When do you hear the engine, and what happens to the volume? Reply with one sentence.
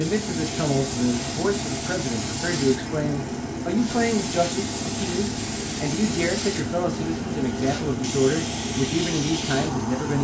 The engine can be heard from 0.0 to 10.1 s, at a steady volume.